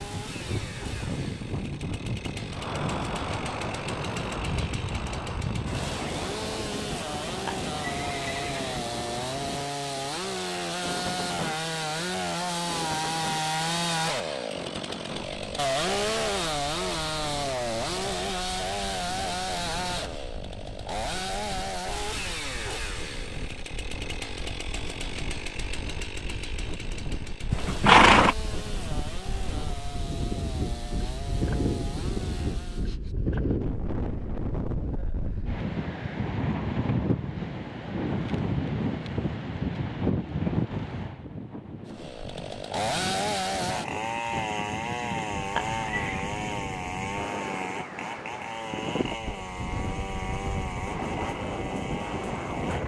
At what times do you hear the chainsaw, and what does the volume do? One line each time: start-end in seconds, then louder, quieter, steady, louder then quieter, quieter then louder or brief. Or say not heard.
0.0-33.0 louder then quieter
41.9-52.8 quieter.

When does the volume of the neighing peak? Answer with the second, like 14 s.
28 s.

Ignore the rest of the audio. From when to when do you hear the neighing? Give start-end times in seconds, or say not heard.
7.5-8.8, 27.5-28.4, 45.5-46.3.